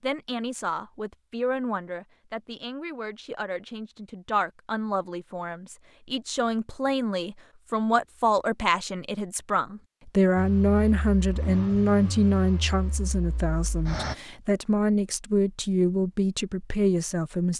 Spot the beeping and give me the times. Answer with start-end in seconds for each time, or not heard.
not heard.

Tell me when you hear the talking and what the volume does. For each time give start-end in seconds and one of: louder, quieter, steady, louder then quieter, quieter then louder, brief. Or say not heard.
0.0-17.5 louder.